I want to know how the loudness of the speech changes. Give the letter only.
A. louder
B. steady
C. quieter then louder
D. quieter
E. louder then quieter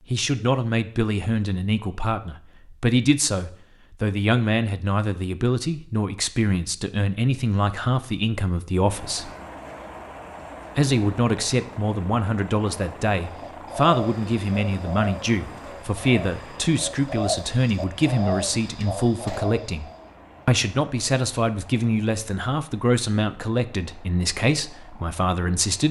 B.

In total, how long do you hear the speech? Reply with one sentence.
You can hear the speech for 24 seconds altogether.